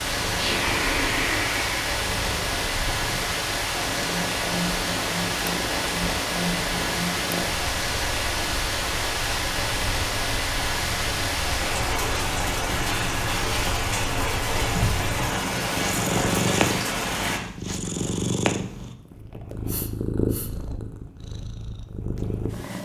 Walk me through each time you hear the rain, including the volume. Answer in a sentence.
The rain can be heard from 0.0 to 17.4 s, at a steady volume.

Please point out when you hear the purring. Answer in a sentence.
The purring can be heard from 0.1 to 22.8 s.